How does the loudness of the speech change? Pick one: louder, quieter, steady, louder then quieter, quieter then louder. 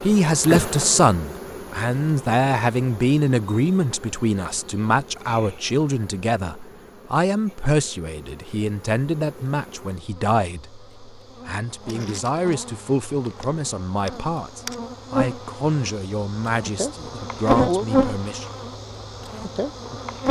quieter.